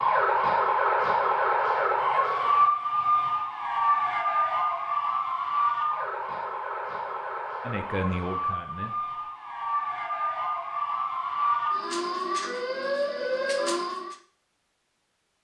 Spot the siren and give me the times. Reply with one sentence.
You can hear the siren from 0.0 to 14.2 s.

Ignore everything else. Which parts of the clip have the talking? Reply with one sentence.
The talking can be heard from 7.6 to 9.1 s.